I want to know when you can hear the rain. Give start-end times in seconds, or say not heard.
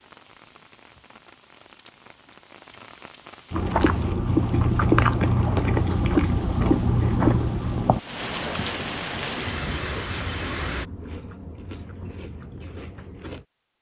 0.0-10.8.